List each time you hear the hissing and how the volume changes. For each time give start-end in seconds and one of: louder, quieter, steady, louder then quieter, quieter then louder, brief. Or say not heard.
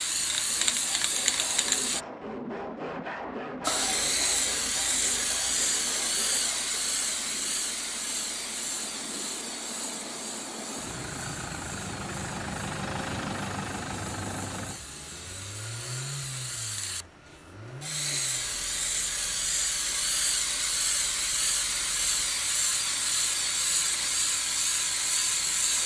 0.0-2.0 brief
3.6-25.8 quieter then louder.